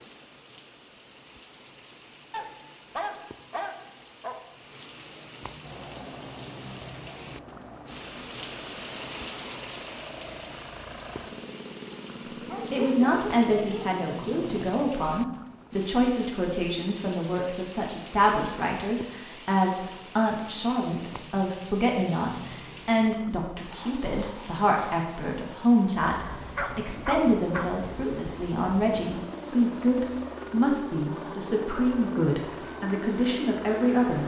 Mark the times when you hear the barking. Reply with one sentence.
You can hear the barking from 2.3 to 4.3 s, from 12.4 to 14.1 s and from 26.6 to 27.8 s.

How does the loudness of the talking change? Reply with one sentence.
The volume of the talking stays about the same.